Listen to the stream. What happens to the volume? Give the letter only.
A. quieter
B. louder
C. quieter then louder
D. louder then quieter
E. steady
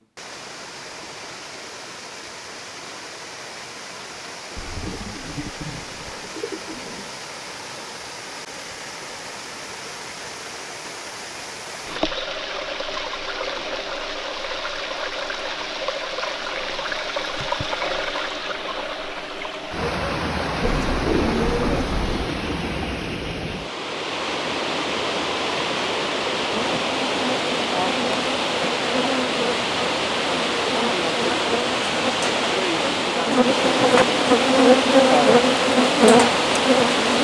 B.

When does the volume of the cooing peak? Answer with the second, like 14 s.
21 s.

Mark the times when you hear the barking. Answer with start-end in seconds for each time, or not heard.
not heard.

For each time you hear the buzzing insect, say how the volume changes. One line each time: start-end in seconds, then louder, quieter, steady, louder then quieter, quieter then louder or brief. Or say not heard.
26.6-37.1 louder.